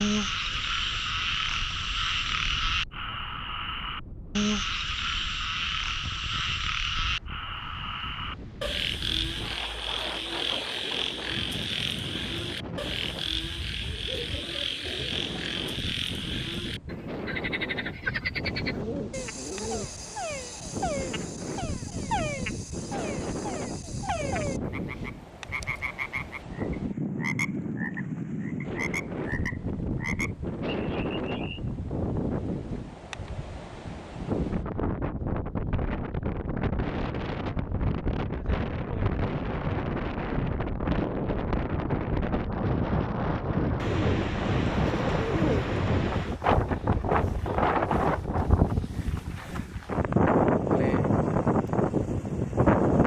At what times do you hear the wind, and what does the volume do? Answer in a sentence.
You can hear the wind from 0.0 to 53.0 s, getting louder.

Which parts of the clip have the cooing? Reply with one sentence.
The cooing can be heard from 13.8 to 15.7 s, from 18.4 to 20.1 s and from 43.8 to 46.4 s.